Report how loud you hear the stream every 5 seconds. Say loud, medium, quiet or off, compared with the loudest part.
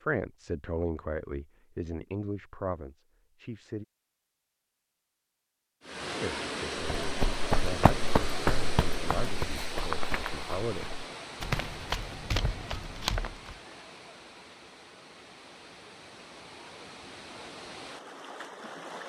off, loud, medium, medium.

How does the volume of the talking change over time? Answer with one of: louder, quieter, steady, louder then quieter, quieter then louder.
quieter.